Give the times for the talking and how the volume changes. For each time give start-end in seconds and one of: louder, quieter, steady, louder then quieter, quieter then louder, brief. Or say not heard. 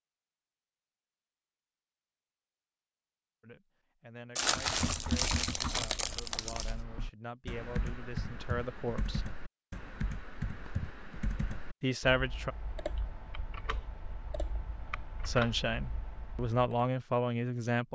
3.4-9.3 louder
11.8-12.6 brief
15.2-17.9 brief.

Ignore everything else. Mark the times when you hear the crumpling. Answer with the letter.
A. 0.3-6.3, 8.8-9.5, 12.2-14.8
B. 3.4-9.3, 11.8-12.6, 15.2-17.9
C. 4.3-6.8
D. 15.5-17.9
C.